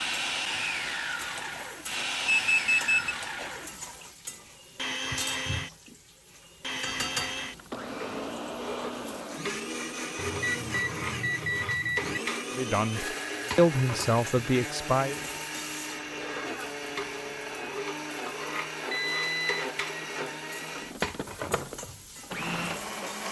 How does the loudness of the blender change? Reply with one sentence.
The volume of the blender stays about the same.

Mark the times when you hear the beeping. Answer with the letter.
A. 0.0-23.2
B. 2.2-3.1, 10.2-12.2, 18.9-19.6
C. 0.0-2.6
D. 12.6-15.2
B.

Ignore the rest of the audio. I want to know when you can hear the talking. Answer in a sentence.
The talking can be heard from 12.6 to 15.2 s.